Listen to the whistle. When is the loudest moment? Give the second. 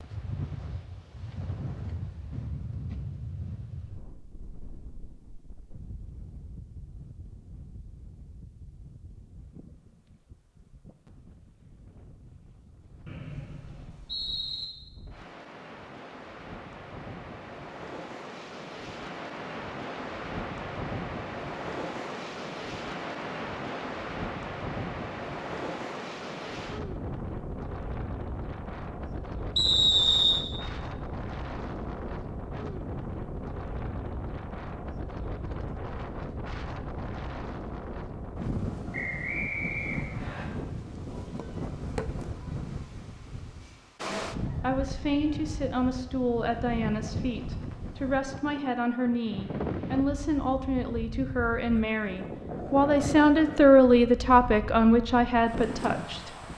30 s.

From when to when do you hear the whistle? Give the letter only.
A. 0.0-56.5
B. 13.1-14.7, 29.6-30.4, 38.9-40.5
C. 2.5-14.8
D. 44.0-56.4
B.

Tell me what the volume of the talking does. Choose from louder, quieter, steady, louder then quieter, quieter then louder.
louder.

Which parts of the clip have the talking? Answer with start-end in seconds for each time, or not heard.
44.0-56.4.